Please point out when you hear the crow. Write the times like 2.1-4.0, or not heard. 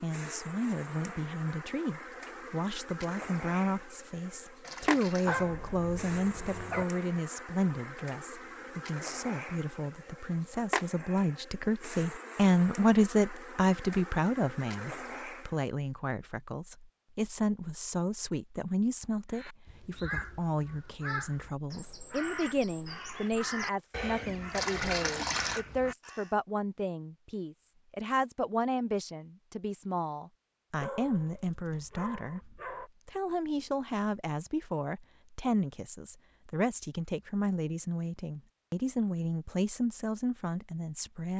19.3-26.4.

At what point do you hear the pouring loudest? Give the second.
25 s.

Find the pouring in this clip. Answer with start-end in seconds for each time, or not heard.
4.6-5.4, 24.5-25.6.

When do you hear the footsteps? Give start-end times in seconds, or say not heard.
not heard.